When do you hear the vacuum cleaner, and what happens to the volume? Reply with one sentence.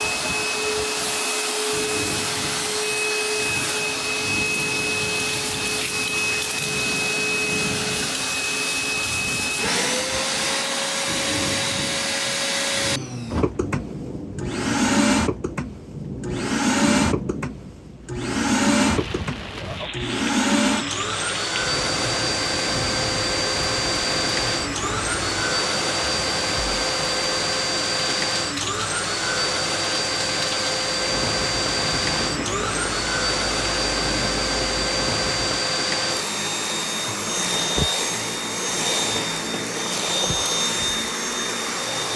The vacuum cleaner can be heard from 0.0 to 42.1 s, at a steady volume.